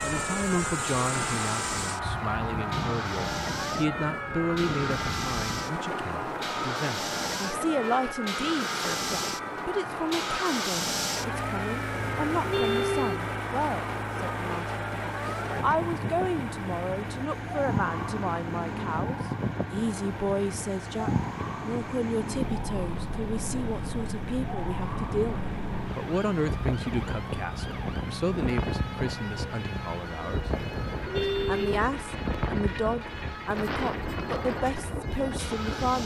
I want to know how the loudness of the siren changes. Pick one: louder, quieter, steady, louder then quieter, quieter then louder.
quieter.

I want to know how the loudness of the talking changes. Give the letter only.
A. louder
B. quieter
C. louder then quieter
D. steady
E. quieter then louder
D.